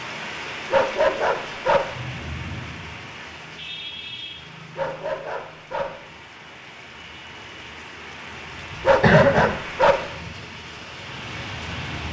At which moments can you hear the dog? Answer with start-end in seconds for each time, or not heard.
0.7-1.9, 4.8-6.0, 8.8-10.1.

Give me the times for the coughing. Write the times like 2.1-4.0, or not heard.
8.7-9.5.